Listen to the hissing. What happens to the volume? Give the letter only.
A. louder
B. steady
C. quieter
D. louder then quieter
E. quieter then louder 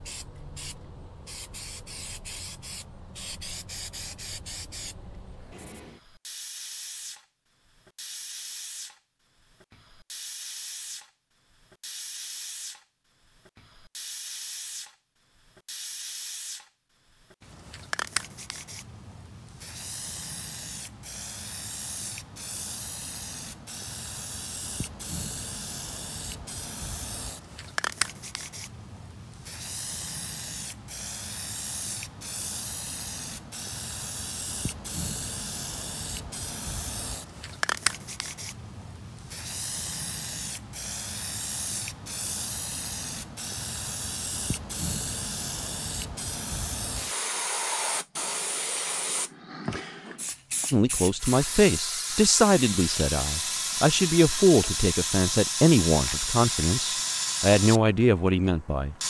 A.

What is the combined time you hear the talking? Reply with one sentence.
The talking can be heard for 8 seconds in total.